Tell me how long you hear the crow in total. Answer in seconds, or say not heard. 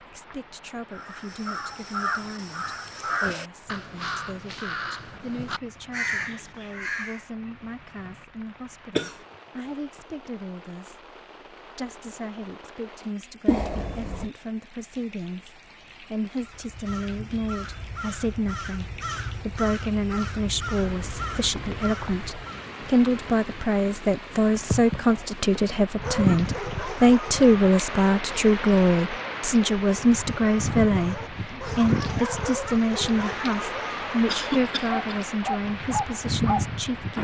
13 s.